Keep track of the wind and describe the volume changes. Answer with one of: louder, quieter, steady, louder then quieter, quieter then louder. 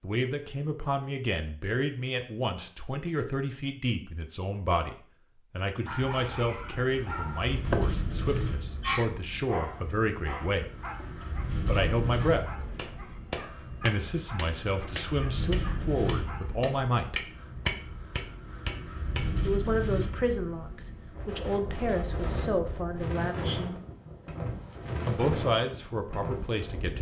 steady.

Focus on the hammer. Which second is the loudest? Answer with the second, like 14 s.
18 s.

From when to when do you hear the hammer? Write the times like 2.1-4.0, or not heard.
12.6-19.2.